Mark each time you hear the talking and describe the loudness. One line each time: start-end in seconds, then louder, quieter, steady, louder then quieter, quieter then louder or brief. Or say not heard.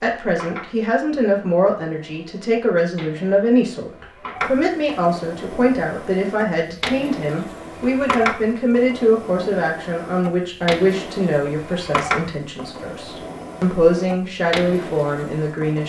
0.0-15.8 steady.